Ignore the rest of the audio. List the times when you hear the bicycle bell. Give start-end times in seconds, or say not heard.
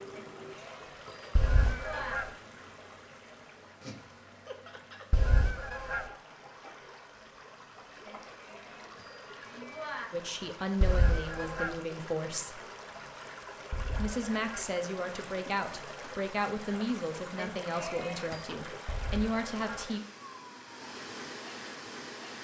0.1-2.1, 8.1-10.1, 17.4-18.4.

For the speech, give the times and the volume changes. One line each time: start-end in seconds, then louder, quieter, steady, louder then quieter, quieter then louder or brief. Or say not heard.
10.1-12.6 brief
13.9-20.0 steady.